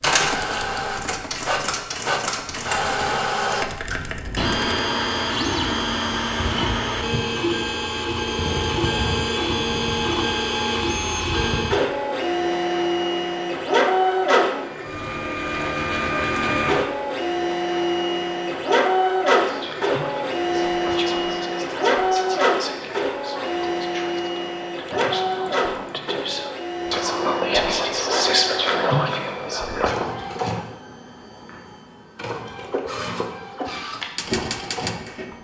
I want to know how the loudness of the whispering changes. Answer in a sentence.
The volume of the whispering goes up.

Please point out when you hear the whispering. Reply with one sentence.
You can hear the whispering from 19.4 to 29.9 s.